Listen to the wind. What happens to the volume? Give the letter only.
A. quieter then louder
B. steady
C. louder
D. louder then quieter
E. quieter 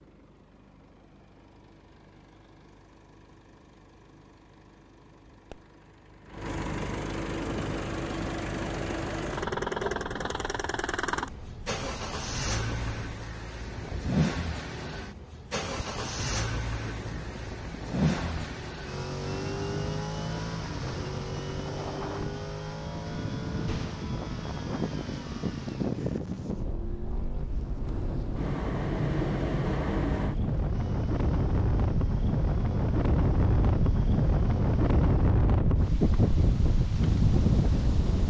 C.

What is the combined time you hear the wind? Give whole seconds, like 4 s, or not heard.
31 s.